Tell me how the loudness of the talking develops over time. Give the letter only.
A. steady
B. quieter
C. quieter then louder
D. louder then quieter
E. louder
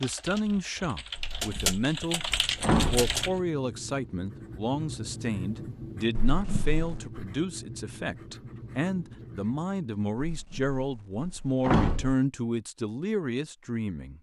A.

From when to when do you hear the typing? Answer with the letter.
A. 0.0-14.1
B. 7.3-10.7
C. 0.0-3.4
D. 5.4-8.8
C.